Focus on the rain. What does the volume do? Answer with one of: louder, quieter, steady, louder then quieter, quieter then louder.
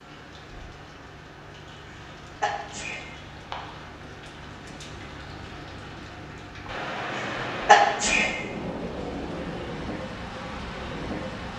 louder.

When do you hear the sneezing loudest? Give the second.
8 s.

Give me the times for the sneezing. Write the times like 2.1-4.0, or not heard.
1.9-3.0, 7.1-8.3.